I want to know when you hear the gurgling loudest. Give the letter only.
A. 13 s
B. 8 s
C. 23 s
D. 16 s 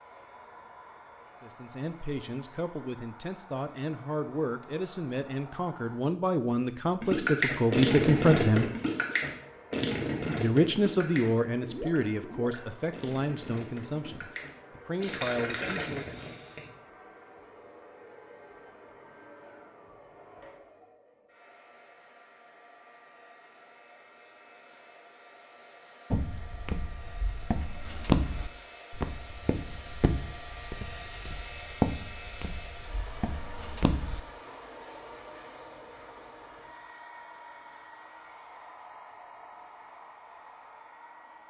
B.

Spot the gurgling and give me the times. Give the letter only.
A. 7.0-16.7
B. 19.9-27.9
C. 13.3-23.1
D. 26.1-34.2
A.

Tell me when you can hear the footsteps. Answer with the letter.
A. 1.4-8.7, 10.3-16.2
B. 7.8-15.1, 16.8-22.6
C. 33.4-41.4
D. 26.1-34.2
D.